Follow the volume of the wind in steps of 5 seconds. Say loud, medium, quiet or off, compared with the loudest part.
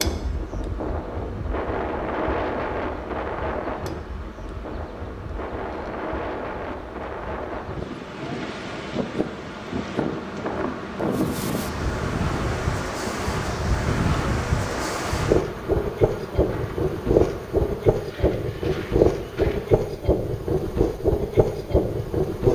medium, medium, medium, loud, loud.